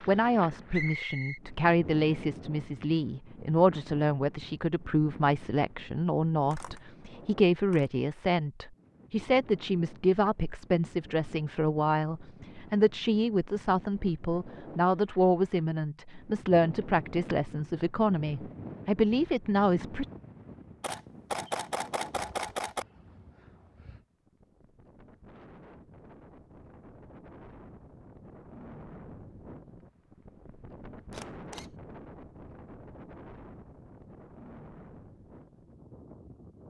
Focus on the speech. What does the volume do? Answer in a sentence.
The loudness of the speech stays about the same.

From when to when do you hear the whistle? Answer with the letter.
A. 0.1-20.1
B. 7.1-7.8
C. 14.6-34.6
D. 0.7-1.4
D.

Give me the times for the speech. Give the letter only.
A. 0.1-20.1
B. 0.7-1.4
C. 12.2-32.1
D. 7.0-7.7
A.